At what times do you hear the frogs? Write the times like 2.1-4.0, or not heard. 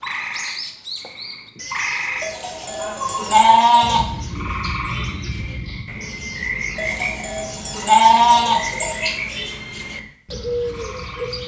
0.0-11.4.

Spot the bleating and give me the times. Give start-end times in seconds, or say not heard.
2.2-4.0, 6.8-9.2.